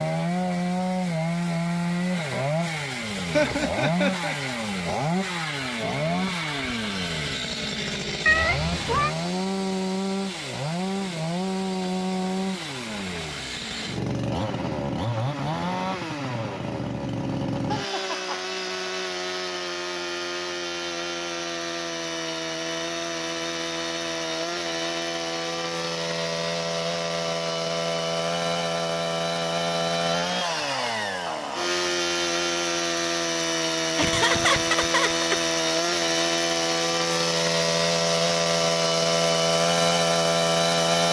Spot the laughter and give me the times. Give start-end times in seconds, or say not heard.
3.3-4.3, 17.6-18.4, 34.0-35.4.